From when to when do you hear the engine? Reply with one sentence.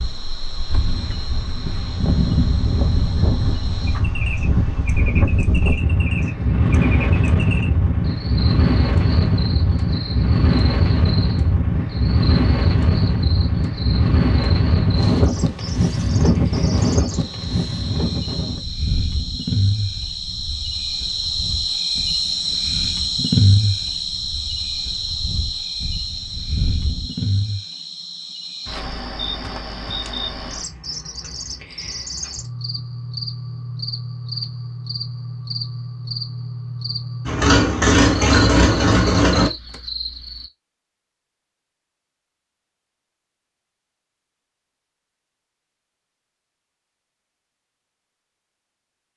The engine can be heard from 37.2 to 39.5 s.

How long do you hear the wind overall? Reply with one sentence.
The wind can be heard for 27 seconds in total.